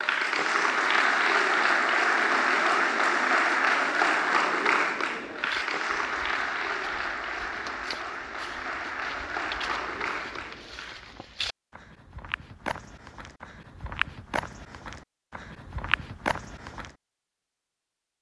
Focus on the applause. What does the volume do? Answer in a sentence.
The loudness of the applause goes down.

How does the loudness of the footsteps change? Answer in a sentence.
The volume of the footsteps goes up.